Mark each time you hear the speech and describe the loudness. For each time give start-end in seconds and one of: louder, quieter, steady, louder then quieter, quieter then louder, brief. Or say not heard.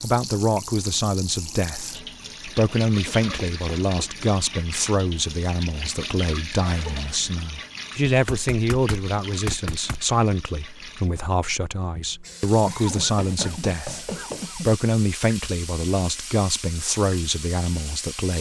0.0-18.3 steady.